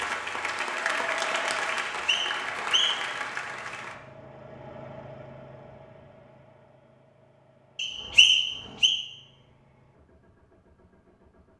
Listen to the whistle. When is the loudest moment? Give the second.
8 s.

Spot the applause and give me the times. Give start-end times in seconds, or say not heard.
0.0-4.0.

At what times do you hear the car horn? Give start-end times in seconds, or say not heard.
not heard.